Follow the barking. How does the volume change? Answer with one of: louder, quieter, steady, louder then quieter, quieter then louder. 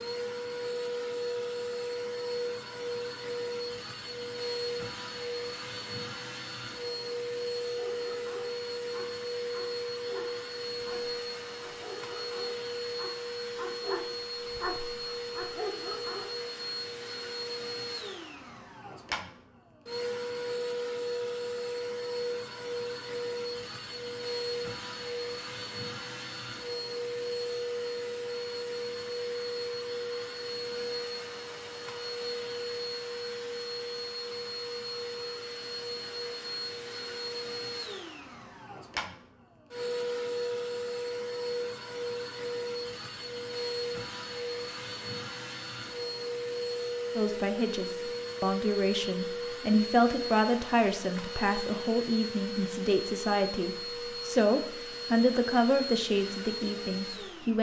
louder.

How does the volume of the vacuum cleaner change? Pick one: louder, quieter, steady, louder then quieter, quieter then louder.
steady.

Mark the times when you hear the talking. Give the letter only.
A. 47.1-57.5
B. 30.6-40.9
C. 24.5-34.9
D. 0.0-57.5
A.